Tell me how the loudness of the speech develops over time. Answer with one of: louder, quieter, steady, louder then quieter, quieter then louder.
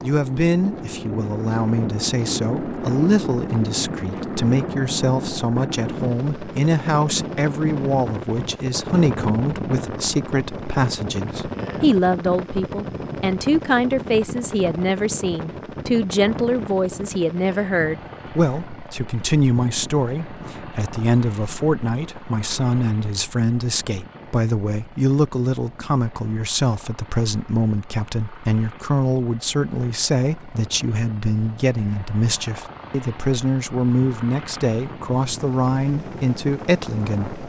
steady.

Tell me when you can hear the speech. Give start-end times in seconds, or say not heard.
0.0-37.4.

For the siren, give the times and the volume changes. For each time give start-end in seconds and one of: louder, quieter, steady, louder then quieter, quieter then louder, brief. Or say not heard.
not heard.